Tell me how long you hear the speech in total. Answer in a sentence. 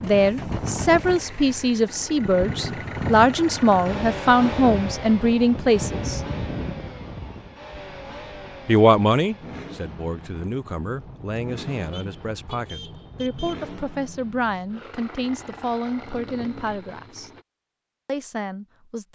The speech can be heard for 16 seconds in total.